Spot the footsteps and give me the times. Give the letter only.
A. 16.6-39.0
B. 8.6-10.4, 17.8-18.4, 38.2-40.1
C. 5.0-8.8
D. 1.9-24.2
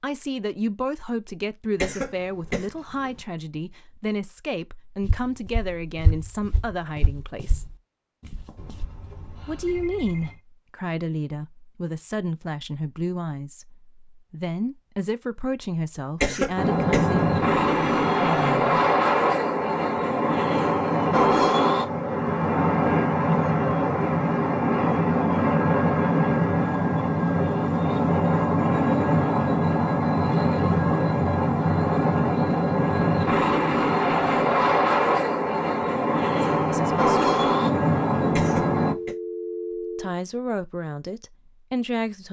C.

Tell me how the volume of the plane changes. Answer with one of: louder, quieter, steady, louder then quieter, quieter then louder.
steady.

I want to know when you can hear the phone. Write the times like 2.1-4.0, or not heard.
8.6-10.4, 17.8-18.4, 38.2-40.1.